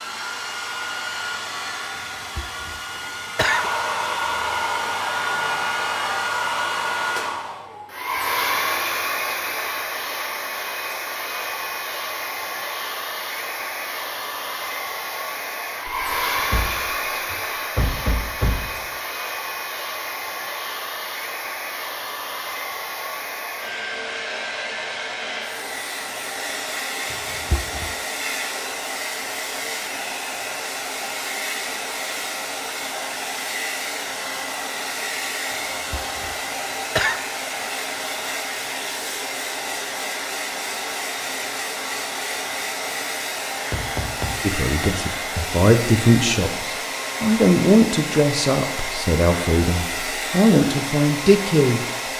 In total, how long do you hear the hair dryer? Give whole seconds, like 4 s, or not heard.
52 s.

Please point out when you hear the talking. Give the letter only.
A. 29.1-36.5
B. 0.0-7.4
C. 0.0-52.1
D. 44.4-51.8
D.